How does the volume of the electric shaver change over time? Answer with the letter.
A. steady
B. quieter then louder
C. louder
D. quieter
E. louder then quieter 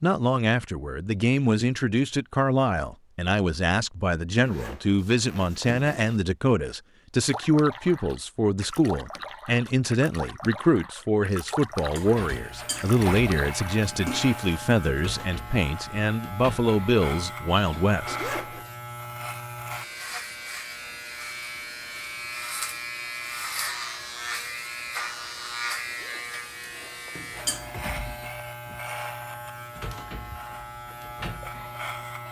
A.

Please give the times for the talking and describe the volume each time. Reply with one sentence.
You can hear the talking from 0.0 to 18.3 s, at a steady volume.